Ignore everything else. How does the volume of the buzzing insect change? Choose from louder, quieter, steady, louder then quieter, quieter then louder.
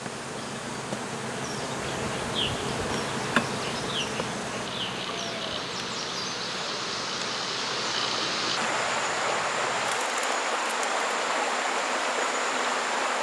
quieter.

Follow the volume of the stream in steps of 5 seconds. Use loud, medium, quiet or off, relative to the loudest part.
quiet, loud, loud.